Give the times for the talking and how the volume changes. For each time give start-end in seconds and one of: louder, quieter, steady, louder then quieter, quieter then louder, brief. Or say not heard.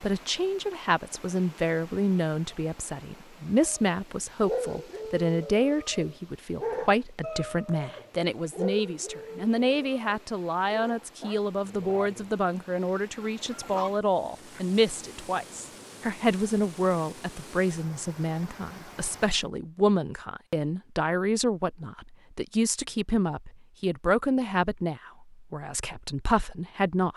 0.0-27.1 steady.